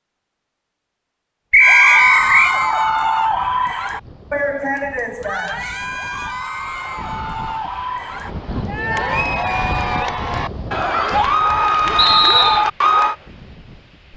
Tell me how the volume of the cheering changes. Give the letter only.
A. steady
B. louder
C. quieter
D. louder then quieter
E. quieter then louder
E.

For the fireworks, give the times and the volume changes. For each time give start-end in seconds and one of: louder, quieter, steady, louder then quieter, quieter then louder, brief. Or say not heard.
not heard.